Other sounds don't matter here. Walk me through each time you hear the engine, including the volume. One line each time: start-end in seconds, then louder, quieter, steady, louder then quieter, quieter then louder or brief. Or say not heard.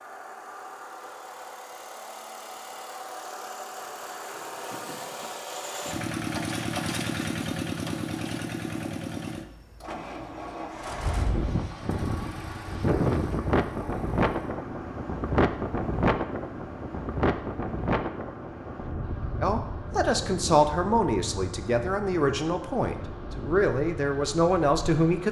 0.0-25.2 louder then quieter.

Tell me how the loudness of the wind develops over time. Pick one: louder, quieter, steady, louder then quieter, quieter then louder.
quieter.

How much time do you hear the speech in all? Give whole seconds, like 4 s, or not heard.
6 s.